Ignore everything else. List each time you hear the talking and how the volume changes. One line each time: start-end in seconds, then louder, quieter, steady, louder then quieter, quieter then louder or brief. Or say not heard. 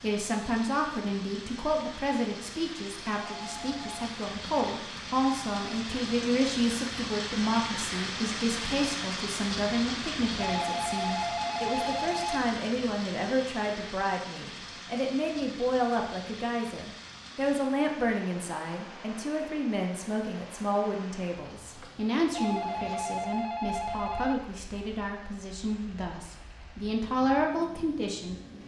0.0-28.4 steady.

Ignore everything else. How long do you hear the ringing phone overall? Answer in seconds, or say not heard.
5 s.